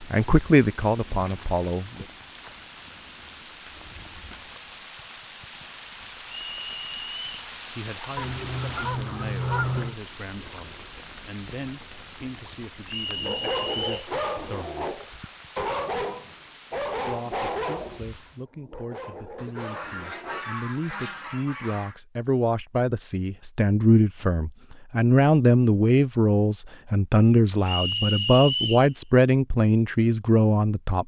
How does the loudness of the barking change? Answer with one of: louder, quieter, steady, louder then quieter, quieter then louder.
quieter.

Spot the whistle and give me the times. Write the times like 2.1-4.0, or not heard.
6.4-7.3, 12.8-14.1, 27.6-28.9.